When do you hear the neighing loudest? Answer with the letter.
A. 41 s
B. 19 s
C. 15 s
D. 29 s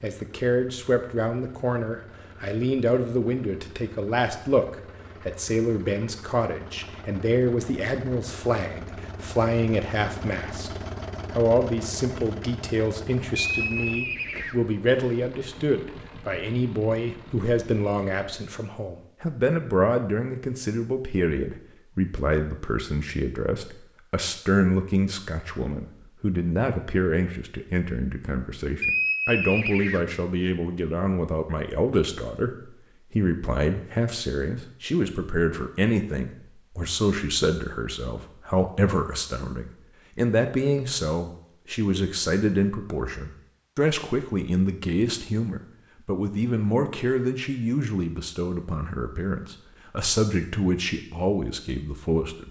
D.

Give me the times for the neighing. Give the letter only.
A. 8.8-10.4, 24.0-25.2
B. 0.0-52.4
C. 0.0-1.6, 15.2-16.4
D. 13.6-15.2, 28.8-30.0
D.